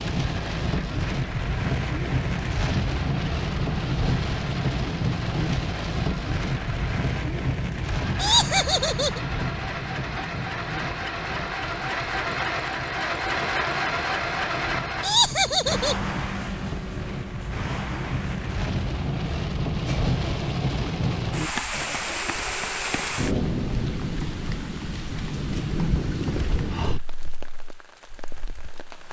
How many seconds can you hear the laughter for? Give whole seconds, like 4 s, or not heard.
2 s.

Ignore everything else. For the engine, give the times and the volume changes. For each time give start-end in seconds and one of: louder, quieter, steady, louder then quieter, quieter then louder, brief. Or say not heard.
0.0-26.7 louder then quieter.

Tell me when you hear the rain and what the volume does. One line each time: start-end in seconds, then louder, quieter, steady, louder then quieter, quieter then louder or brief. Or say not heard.
0.0-29.0 quieter then louder.